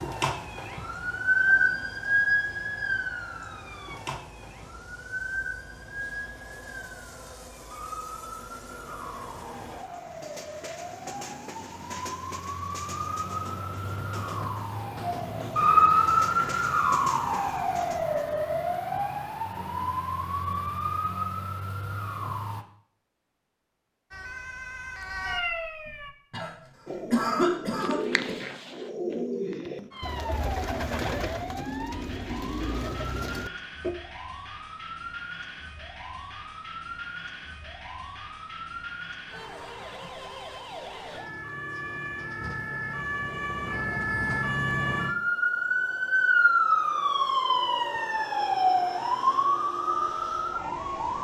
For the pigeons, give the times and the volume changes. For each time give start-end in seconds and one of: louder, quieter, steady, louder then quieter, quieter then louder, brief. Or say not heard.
26.9-34.0 steady.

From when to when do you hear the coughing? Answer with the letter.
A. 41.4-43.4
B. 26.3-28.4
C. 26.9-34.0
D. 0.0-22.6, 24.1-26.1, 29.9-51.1
B.